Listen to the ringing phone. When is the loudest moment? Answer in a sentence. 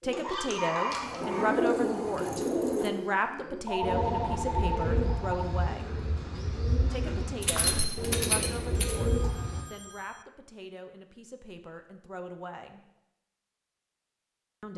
The volume of the ringing phone peaks at 4 seconds.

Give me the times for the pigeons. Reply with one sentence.
The pigeons can be heard from 0.0 to 9.7 s.